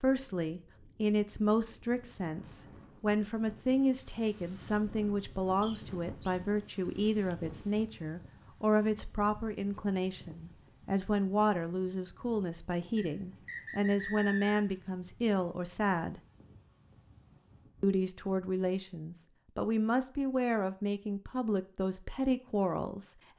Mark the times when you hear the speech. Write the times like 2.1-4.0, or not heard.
0.0-16.2, 17.8-23.1.